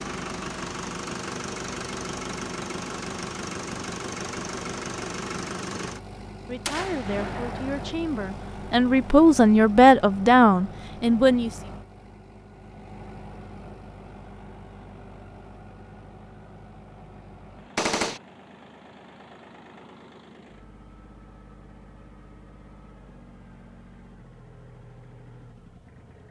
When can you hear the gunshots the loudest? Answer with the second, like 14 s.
18 s.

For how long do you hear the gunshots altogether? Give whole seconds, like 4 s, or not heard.
2 s.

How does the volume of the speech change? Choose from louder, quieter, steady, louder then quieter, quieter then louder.
louder.